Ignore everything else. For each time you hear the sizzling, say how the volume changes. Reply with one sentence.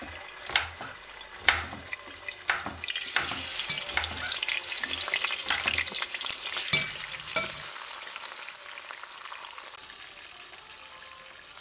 The sizzling can be heard from 0.0 to 11.5 s, getting louder then quieter.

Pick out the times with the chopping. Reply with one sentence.
You can hear the chopping from 0.0 to 6.0 s.